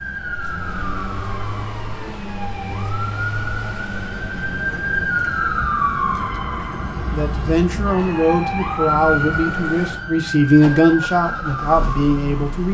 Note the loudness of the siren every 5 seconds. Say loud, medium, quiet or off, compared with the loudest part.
medium, loud, medium.